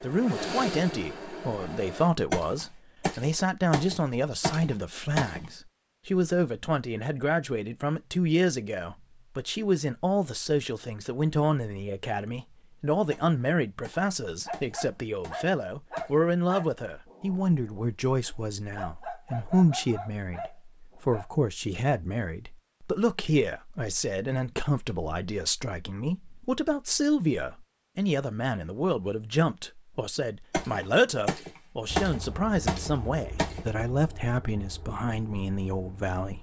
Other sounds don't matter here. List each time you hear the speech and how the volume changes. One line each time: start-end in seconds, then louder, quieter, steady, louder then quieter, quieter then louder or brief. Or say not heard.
0.0-36.3 steady.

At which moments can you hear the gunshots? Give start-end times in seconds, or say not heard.
2.3-5.5, 13.1-16.3, 30.5-33.7.